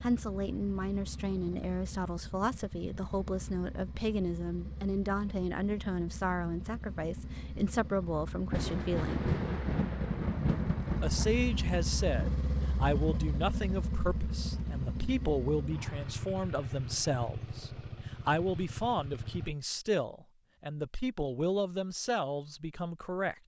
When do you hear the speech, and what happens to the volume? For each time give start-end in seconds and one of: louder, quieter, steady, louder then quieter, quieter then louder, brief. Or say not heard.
0.0-9.3 steady
11.0-23.4 steady.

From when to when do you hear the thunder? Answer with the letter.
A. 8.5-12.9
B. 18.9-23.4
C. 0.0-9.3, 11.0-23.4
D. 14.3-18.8
A.